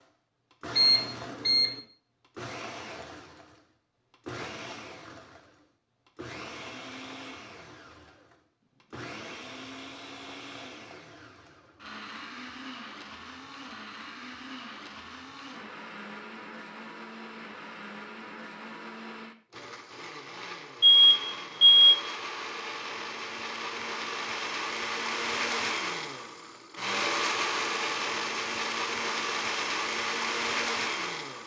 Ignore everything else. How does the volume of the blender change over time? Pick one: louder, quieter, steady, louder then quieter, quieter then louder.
louder.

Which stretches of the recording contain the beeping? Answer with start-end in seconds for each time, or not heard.
0.8-1.7, 20.8-21.9.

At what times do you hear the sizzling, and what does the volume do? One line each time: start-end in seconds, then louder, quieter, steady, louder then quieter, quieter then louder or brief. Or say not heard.
not heard.